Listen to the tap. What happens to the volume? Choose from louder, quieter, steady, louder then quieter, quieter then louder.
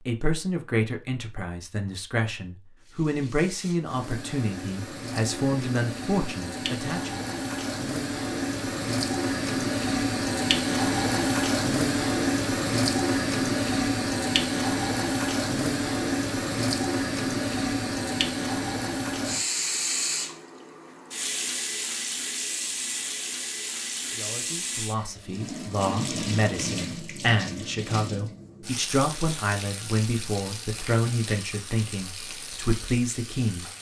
louder then quieter.